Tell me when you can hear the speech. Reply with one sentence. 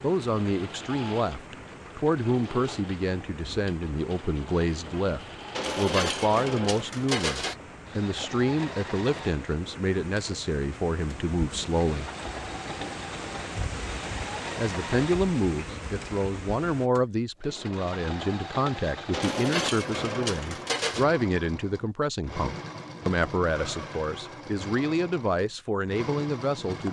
You can hear the speech from 0.0 to 12.1 s and from 14.6 to 26.8 s.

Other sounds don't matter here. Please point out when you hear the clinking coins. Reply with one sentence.
You can hear the clinking coins from 5.5 to 7.5 s and from 19.1 to 21.1 s.